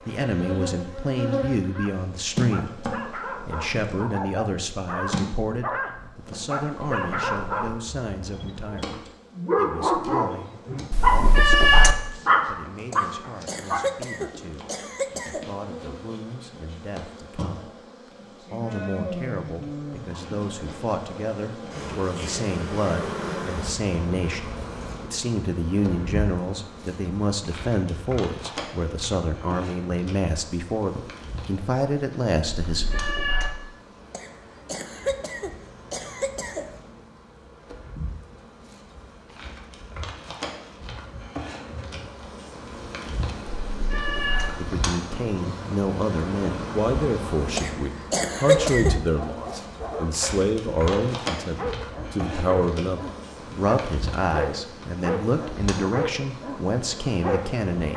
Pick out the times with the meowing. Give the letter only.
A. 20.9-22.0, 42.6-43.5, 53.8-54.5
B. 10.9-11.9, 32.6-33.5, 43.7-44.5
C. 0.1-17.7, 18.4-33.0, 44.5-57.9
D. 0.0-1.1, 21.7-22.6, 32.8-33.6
B.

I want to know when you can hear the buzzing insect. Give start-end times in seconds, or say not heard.
0.0-57.9.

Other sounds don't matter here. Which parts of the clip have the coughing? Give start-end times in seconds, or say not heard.
12.9-15.5, 34.1-36.7, 47.5-49.0.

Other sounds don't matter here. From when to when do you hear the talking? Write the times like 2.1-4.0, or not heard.
0.1-17.7, 18.4-33.0, 44.5-57.9.